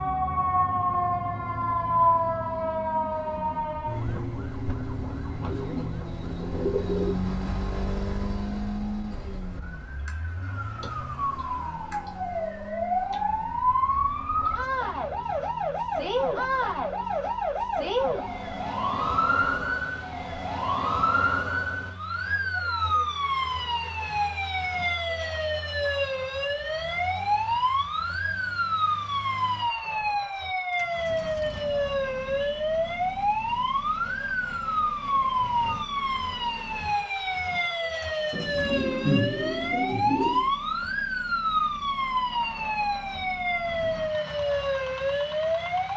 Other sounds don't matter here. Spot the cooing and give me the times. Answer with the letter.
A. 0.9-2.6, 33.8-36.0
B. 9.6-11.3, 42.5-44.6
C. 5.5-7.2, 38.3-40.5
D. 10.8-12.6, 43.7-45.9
C.